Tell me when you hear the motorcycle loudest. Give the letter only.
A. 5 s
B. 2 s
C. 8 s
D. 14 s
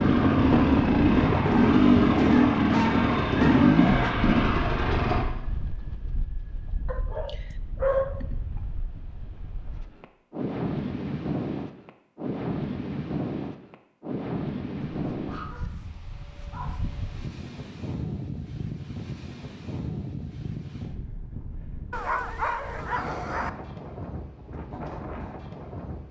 B.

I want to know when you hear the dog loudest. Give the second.
8 s.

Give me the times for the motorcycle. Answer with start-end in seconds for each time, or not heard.
0.0-5.2.